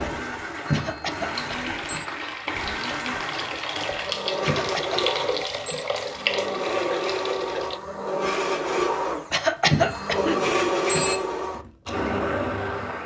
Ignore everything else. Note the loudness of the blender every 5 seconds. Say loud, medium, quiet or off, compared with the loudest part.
medium, loud, loud.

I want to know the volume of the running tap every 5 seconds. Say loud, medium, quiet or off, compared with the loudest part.
loud, loud, off.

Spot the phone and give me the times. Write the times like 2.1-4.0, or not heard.
0.7-2.0, 4.5-5.8, 9.7-11.2.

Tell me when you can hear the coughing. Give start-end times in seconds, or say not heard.
0.7-1.8, 4.5-5.0, 9.3-10.4.